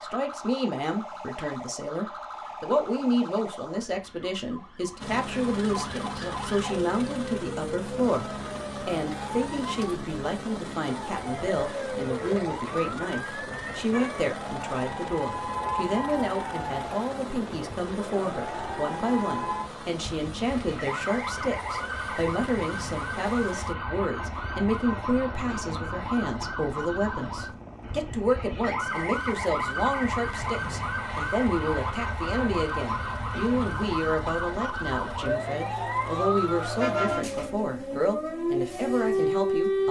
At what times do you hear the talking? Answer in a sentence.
You can hear the talking from 0.0 to 39.8 s.